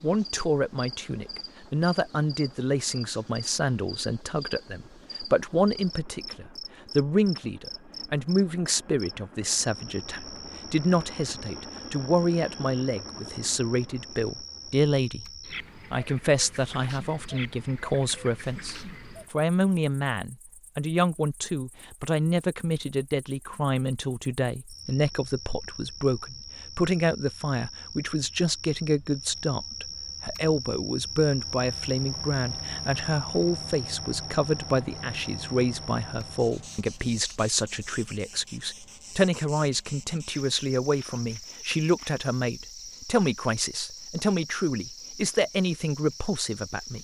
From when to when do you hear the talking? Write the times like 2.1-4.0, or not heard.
0.0-15.3, 15.9-46.9.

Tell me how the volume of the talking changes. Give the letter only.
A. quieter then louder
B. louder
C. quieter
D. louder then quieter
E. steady
E.